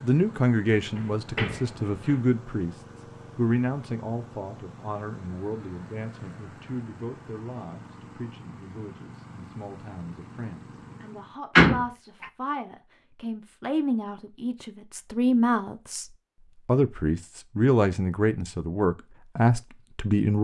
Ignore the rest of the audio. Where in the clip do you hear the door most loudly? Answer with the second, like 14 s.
12 s.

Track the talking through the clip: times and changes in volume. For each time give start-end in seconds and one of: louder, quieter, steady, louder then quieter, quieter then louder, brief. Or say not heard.
0.0-20.3 quieter then louder.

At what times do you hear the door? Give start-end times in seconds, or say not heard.
0.9-2.2, 11.6-12.2.